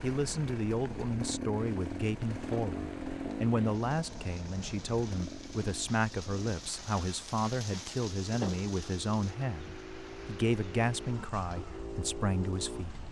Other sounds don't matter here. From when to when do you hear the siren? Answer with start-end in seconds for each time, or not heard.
not heard.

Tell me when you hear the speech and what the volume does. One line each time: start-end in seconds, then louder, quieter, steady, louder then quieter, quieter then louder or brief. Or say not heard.
0.0-13.0 steady.